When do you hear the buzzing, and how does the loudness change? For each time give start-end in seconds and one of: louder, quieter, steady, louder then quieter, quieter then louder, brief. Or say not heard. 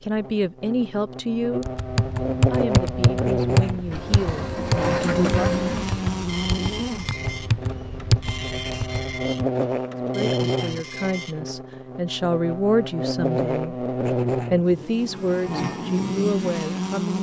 0.0-17.1 steady.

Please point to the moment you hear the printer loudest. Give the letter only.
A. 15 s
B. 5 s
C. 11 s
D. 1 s
B.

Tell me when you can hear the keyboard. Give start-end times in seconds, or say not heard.
1.6-9.4.